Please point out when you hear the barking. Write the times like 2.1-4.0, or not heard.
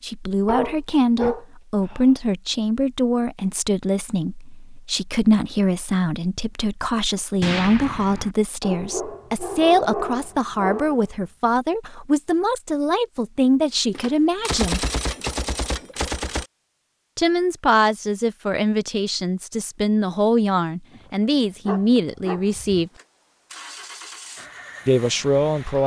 0.5-2.1, 8.6-11.1, 20.9-22.8.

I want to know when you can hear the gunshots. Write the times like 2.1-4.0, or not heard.
7.4-8.3, 13.9-16.4.